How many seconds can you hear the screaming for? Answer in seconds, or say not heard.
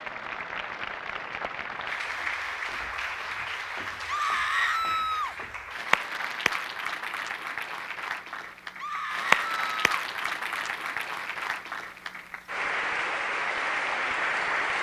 2 s.